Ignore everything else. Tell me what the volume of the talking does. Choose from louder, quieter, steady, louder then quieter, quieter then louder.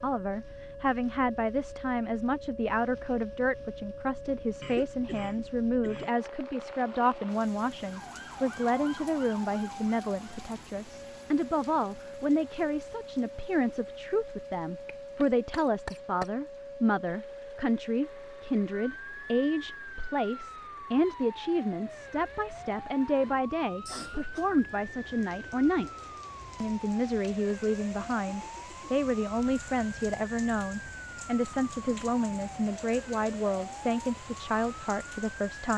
steady.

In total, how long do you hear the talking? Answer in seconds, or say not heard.
36 s.